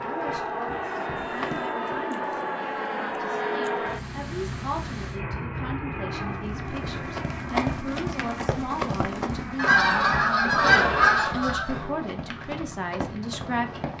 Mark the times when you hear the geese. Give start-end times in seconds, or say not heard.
9.6-11.8.